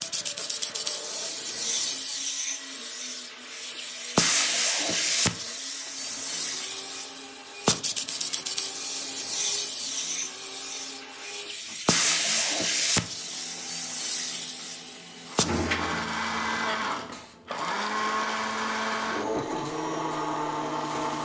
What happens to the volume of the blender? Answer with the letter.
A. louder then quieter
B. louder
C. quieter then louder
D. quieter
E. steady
B.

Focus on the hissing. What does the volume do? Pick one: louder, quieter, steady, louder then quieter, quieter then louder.
quieter.